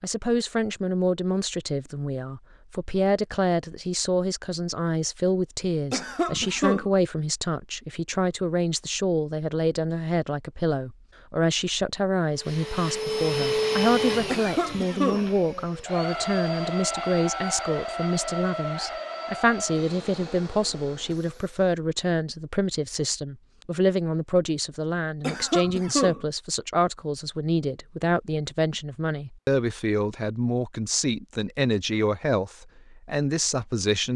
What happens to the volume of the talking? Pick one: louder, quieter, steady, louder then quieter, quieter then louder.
steady.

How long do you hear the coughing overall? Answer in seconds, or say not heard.
3 s.